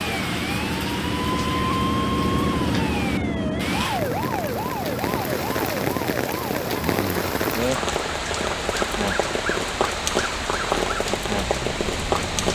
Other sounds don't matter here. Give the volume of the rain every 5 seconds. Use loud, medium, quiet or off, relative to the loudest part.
medium, loud, loud.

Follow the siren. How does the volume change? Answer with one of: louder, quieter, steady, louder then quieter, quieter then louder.
quieter.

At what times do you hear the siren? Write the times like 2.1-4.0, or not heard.
0.0-12.4.